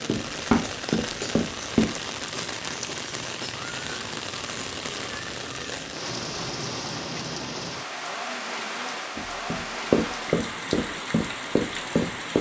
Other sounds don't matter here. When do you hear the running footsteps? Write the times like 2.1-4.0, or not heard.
0.1-1.9, 9.2-12.3.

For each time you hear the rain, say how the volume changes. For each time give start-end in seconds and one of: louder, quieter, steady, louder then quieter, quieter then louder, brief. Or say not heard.
0.0-12.3 steady.